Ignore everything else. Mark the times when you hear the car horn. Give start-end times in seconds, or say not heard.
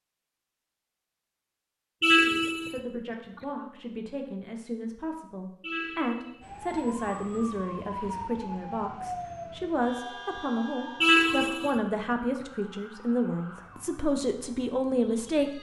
2.0-3.4, 5.6-6.4, 11.0-12.4.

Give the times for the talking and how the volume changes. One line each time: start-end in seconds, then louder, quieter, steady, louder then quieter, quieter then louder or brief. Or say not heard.
2.2-15.5 louder.